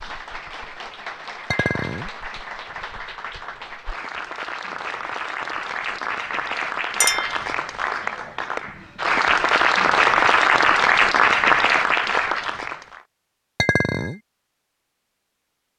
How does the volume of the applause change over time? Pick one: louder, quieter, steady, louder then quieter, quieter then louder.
louder.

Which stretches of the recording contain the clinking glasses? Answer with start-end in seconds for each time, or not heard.
1.5-2.1, 7.0-7.5, 13.6-14.2.